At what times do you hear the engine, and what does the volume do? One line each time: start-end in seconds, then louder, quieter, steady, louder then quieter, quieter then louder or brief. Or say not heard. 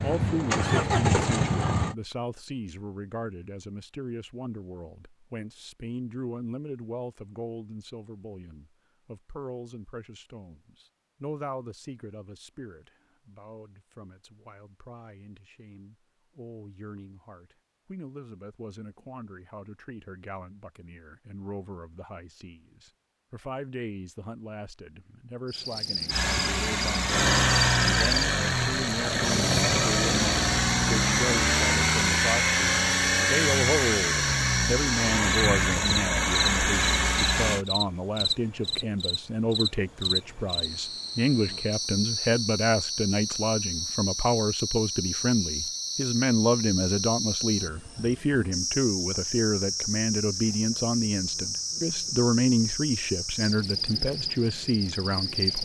0.0-1.9 brief
26.1-37.6 steady.